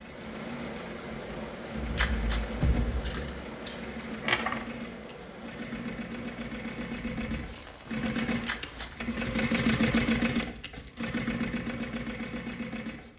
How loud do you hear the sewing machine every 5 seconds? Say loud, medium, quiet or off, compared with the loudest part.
medium, loud, loud.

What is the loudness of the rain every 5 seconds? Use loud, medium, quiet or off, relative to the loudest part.
loud, medium, off.